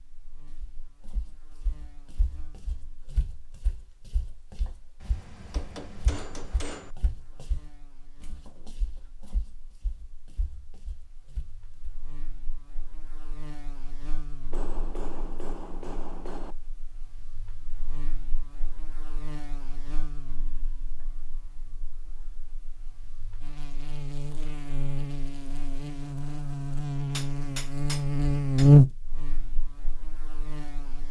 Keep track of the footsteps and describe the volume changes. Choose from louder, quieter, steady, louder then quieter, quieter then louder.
louder then quieter.